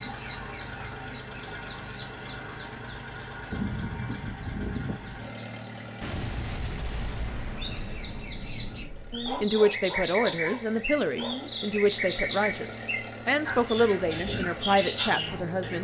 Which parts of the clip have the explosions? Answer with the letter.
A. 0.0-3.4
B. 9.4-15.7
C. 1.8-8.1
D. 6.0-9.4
D.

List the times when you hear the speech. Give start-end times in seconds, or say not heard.
9.4-15.7.